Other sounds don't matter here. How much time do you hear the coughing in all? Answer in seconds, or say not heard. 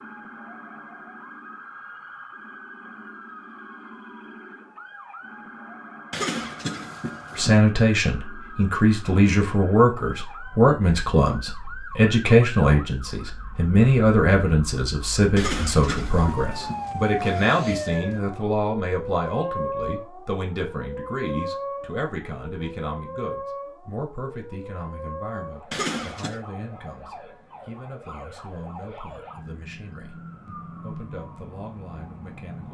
5 s.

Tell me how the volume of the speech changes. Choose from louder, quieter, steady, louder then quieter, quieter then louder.
quieter.